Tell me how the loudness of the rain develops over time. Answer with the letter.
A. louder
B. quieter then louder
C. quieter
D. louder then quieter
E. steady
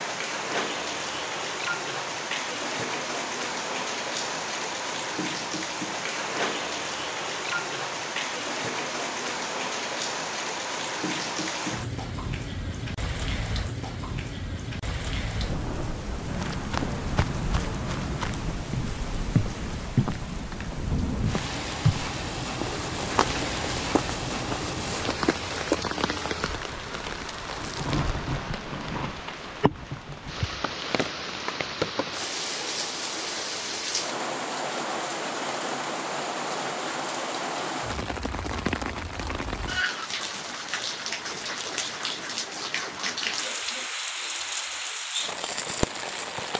E.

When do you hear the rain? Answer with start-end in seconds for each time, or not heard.
0.0-46.5.